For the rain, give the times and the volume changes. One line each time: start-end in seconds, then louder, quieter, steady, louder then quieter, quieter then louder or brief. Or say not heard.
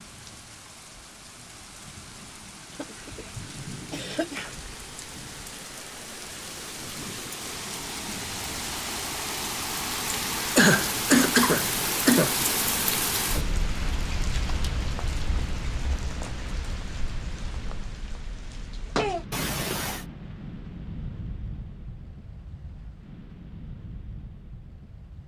0.0-25.2 louder then quieter.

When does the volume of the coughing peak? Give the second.
11 s.